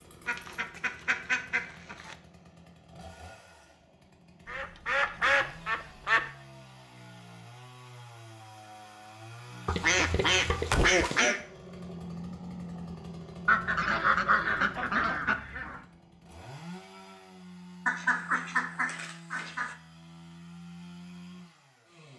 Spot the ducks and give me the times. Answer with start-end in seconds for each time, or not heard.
0.2-2.1, 4.5-6.3, 9.7-11.4, 13.4-15.8, 17.9-19.8.